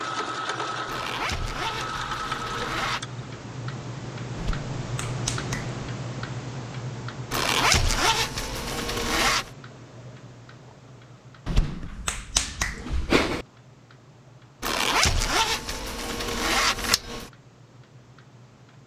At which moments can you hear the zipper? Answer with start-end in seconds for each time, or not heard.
0.8-3.0, 7.3-9.5, 14.6-17.3.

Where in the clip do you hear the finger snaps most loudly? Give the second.
13 s.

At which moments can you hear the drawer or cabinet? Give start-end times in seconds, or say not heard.
not heard.